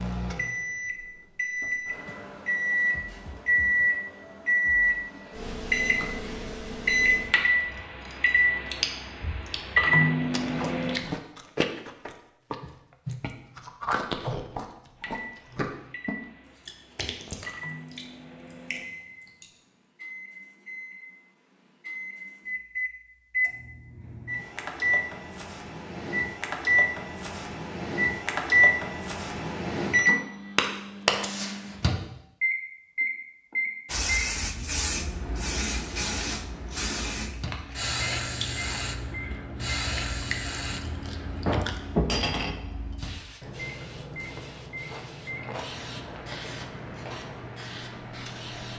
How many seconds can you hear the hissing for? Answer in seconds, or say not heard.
15 s.